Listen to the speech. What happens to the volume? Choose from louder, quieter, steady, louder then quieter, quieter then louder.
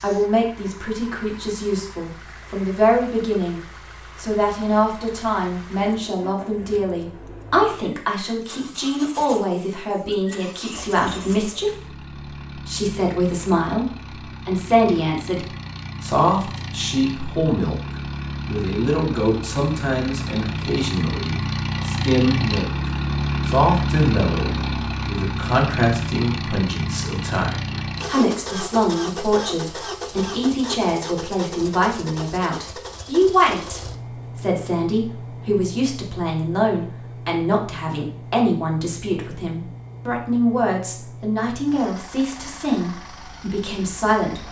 steady.